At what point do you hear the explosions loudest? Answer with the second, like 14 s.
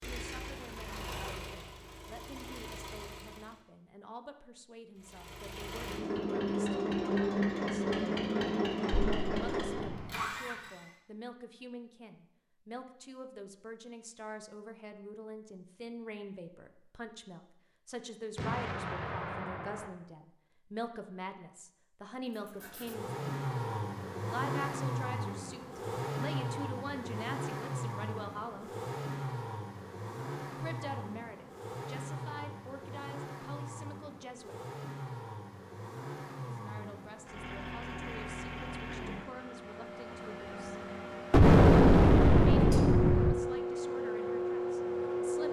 42 s.